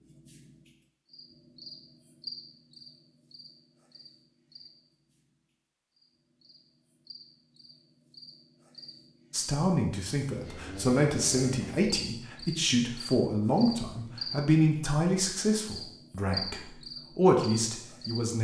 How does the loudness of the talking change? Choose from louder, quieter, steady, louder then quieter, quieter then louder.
steady.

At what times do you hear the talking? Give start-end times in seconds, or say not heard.
9.3-18.3.